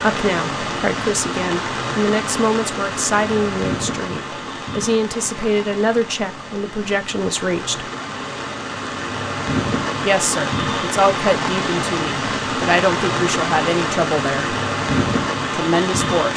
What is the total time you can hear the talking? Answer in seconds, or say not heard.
13 s.